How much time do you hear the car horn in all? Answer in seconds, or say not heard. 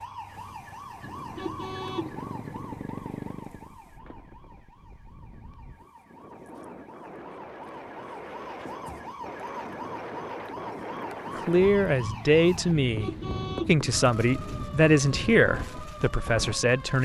4 s.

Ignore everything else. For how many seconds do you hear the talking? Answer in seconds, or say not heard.
6 s.